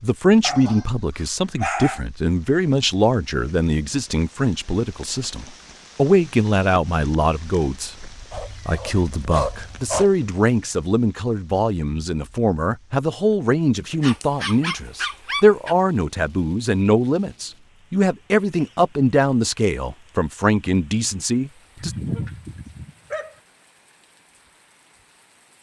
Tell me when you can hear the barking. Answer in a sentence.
The barking can be heard from 0.4 to 2.0 s, from 8.3 to 10.1 s, from 14.0 to 15.8 s and from 21.8 to 23.4 s.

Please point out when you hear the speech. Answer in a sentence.
The speech can be heard from 0.0 to 8.0 s and from 8.7 to 21.9 s.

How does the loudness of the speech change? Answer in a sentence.
The volume of the speech stays about the same.